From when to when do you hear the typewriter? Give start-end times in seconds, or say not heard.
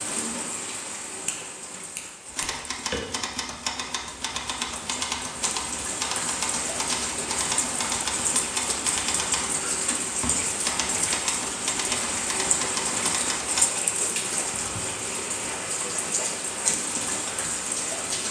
2.3-13.7.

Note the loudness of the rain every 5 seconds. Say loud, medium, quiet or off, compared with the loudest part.
medium, loud, loud, loud.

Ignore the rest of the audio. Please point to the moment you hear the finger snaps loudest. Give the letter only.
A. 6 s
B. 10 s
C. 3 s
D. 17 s
C.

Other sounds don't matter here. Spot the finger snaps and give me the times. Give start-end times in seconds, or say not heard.
1.2-3.1.